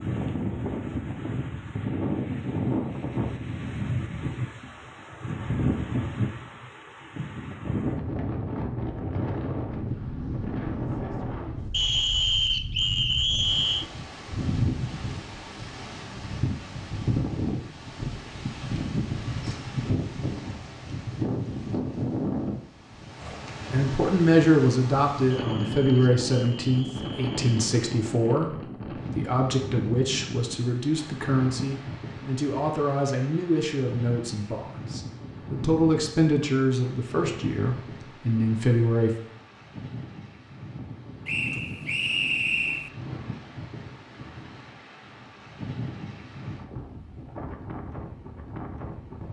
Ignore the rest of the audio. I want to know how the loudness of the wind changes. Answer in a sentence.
The loudness of the wind goes down.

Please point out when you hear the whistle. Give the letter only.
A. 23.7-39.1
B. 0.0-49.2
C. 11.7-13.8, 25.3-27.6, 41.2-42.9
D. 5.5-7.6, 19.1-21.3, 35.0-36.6
C.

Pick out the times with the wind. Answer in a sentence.
You can hear the wind from 0.0 to 49.2 s.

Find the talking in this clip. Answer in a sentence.
The talking can be heard from 23.7 to 39.1 s.